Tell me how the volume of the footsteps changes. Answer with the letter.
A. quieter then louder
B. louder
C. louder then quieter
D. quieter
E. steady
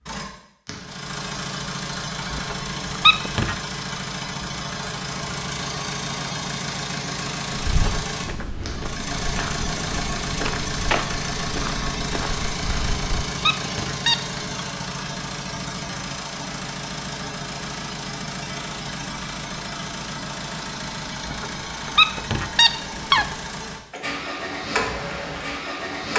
C.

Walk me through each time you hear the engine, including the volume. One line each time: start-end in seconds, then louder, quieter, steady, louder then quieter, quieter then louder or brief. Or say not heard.
0.0-26.1 steady.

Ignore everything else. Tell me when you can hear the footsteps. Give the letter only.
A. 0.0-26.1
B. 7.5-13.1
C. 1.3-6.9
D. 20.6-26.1
B.